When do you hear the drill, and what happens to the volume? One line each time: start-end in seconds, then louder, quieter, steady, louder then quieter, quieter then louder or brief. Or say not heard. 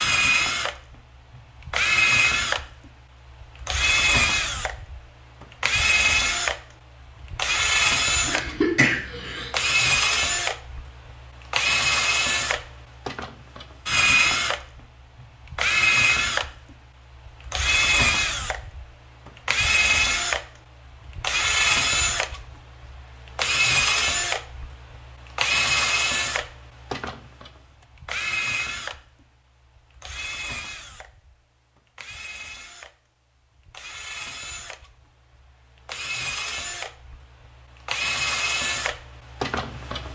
0.0-40.0 quieter.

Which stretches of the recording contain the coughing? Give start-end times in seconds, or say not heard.
8.2-9.5.